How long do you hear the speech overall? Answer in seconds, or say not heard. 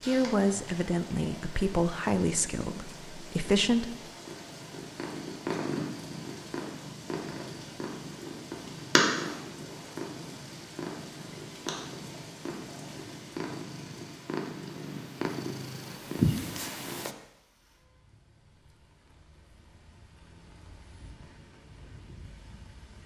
4 s.